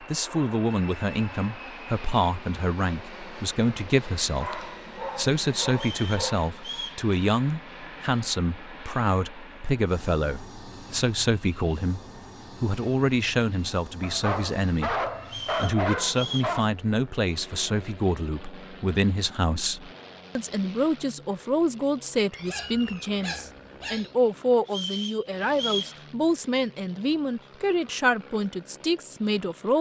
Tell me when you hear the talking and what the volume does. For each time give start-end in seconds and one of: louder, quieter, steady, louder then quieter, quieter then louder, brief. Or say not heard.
0.0-29.7 steady.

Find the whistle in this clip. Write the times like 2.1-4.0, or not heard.
5.7-7.0, 15.2-16.6, 24.6-25.9.